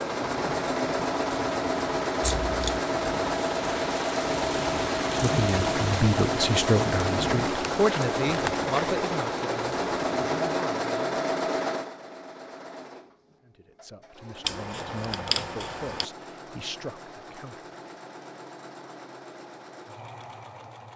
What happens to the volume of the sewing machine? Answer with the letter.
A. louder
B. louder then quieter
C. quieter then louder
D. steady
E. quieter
E.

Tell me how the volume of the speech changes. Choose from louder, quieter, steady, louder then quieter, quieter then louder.
quieter.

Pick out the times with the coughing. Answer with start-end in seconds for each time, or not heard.
not heard.